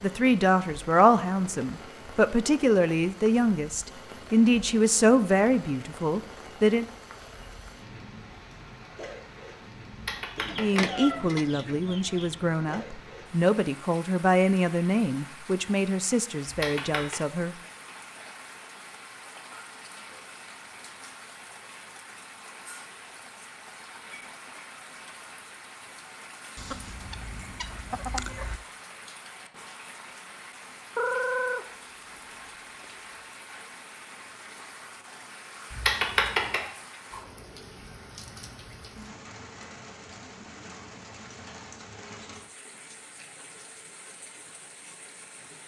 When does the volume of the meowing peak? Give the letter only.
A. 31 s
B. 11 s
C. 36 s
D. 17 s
C.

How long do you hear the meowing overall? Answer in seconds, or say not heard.
3 s.